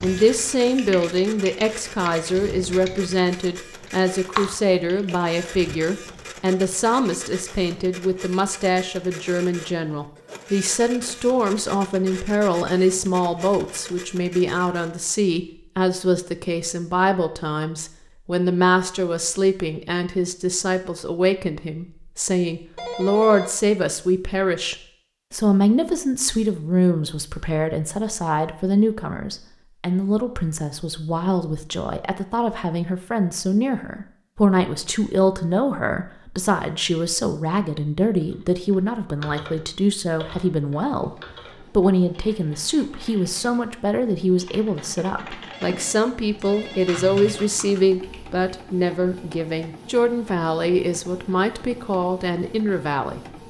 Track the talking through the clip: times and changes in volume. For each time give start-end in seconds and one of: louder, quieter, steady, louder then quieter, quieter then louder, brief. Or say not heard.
0.0-53.2 steady.